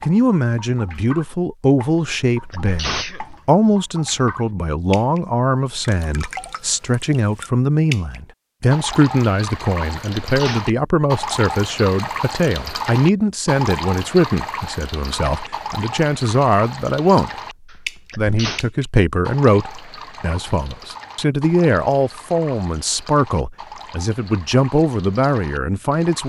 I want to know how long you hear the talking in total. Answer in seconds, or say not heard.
25 s.